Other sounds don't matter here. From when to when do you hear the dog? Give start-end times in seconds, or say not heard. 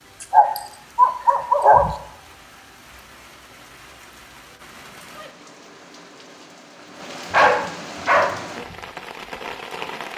0.2-1.9, 7.3-8.4.